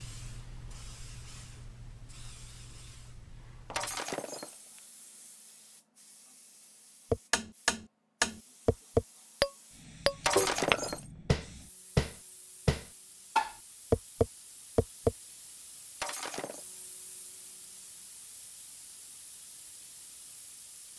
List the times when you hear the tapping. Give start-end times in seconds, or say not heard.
7.1-15.2.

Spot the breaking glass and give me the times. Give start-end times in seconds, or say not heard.
3.7-4.8, 10.2-11.1, 16.0-16.6.